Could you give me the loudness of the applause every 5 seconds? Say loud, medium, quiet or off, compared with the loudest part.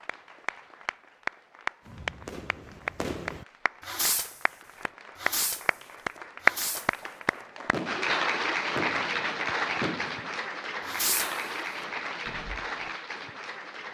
medium, loud, medium.